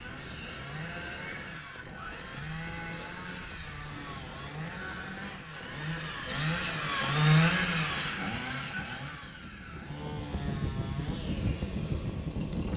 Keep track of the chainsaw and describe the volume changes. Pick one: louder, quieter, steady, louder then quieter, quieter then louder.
louder then quieter.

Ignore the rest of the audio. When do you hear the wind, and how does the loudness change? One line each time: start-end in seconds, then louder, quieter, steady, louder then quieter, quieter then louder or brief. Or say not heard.
0.0-12.7 louder.